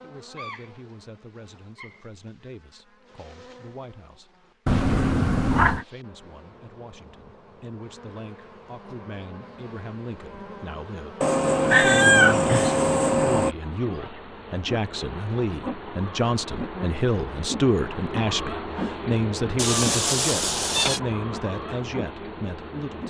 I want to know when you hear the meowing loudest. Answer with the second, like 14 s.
12 s.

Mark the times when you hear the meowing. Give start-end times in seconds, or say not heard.
4.7-5.8, 11.2-13.6, 19.6-21.0.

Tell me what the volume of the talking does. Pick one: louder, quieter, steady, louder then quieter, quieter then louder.
louder.